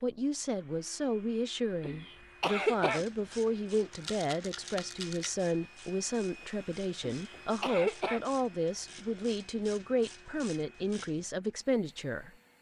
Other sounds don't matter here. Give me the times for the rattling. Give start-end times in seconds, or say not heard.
3.9-5.3.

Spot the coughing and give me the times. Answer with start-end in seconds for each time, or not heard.
1.8-3.0, 7.0-8.2.